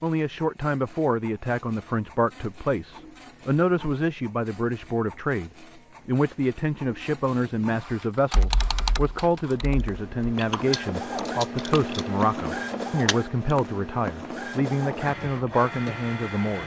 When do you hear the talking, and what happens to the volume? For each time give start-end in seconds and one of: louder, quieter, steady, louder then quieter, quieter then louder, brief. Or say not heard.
0.0-16.6 steady.